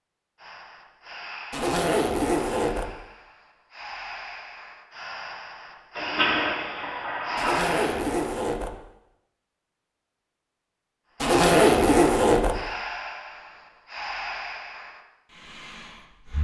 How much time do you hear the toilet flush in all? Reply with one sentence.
The toilet flush can be heard for 2 seconds in total.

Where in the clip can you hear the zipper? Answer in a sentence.
The zipper can be heard from 1.5 to 2.9 s, from 7.3 to 8.8 s and from 11.2 to 12.6 s.